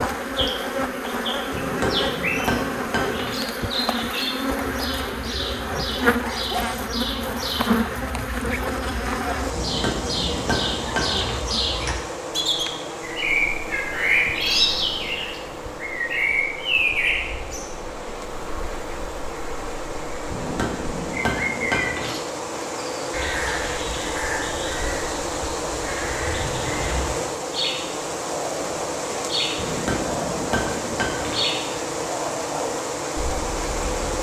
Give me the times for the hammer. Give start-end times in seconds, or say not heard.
1.5-3.4, 9.5-11.4, 20.3-22.1, 29.6-31.4.